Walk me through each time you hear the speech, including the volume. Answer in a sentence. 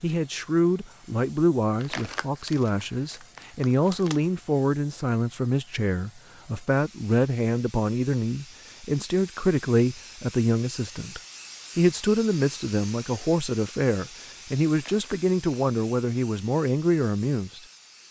You can hear the speech from 0.0 to 17.6 s, at a steady volume.